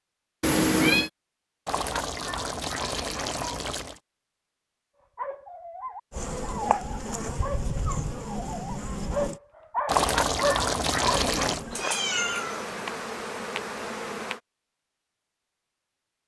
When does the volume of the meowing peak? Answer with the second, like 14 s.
1 s.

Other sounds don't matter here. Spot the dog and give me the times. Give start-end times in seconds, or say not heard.
5.2-11.2.